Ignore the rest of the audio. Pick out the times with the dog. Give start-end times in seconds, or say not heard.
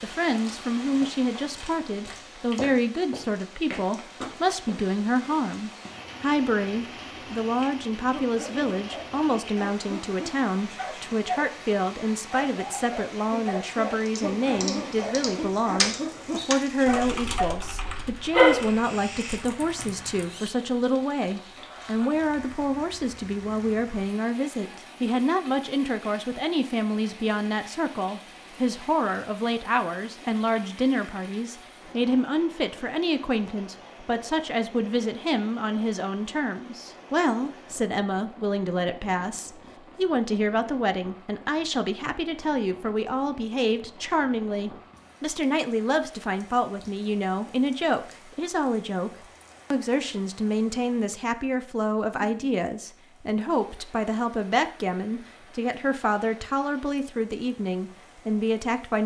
8.1-11.4, 12.3-17.6, 18.3-19.4.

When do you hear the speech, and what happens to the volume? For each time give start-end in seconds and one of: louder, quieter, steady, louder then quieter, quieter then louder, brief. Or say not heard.
0.0-59.0 steady.